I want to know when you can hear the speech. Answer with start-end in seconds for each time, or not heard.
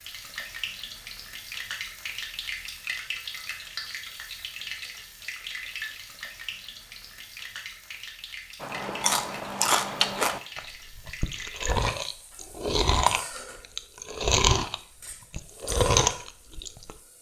not heard.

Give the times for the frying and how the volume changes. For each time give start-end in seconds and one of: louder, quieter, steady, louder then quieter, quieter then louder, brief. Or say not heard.
0.0-17.1 quieter.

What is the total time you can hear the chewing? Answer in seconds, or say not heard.
8 s.